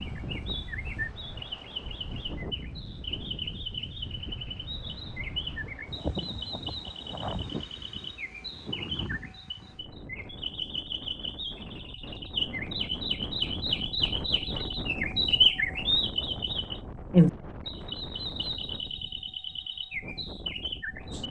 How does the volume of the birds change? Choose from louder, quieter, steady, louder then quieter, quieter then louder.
louder.